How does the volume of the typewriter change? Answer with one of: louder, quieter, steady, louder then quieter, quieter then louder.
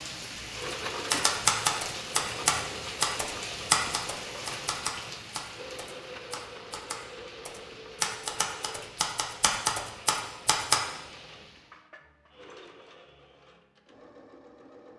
quieter then louder.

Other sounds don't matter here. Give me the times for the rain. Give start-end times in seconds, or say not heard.
0.0-11.8.